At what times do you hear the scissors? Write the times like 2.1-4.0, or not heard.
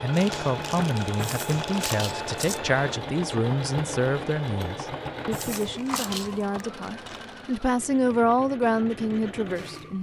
1.1-2.6, 5.3-6.5.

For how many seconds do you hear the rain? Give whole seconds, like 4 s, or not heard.
not heard.